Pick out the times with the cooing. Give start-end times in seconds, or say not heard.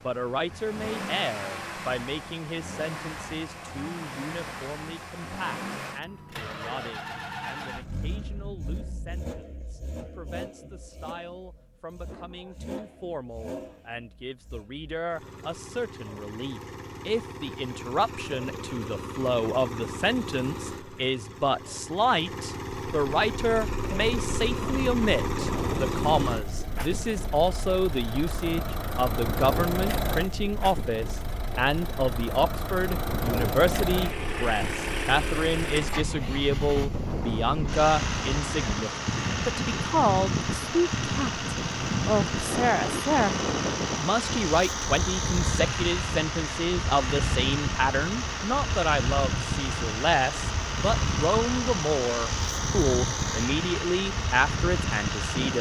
not heard.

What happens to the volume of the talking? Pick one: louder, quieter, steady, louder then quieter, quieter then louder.
louder.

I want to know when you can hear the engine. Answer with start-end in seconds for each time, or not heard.
0.0-55.5.